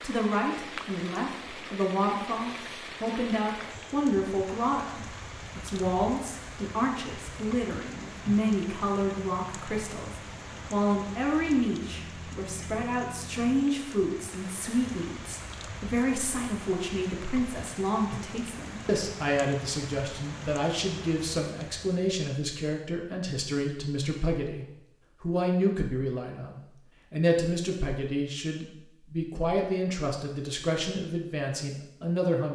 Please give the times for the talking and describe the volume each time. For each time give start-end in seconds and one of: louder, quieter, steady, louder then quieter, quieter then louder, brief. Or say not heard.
0.0-32.5 steady.